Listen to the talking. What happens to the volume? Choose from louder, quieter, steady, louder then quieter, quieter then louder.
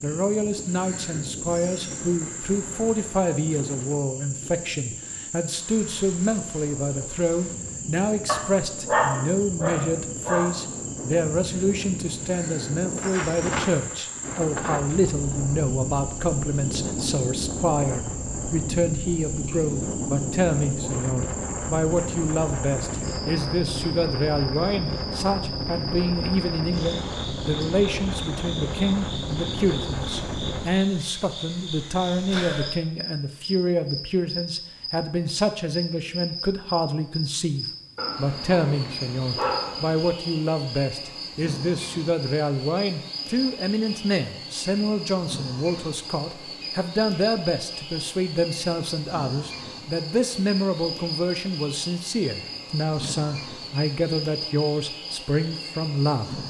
steady.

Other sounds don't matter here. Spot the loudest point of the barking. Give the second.
9 s.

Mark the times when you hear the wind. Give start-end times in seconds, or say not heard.
0.0-30.6.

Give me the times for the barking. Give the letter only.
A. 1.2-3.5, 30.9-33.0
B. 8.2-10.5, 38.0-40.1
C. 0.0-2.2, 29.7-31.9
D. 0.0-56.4
B.